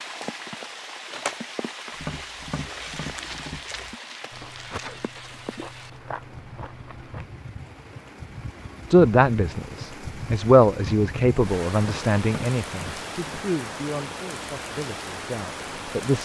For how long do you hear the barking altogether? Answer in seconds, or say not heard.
not heard.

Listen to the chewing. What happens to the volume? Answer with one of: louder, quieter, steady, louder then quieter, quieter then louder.
louder.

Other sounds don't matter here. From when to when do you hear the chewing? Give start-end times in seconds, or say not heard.
2.1-7.3.